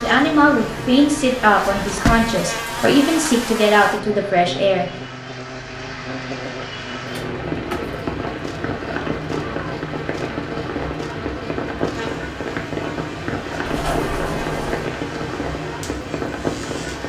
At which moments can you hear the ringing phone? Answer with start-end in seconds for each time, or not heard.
not heard.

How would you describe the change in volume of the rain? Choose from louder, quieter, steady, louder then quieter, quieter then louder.
louder.